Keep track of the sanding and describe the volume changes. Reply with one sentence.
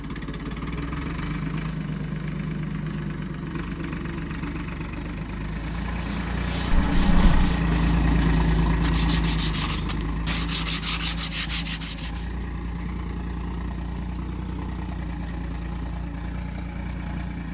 The volume of the sanding goes up.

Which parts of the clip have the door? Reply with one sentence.
The door can be heard from 6.7 to 7.5 s.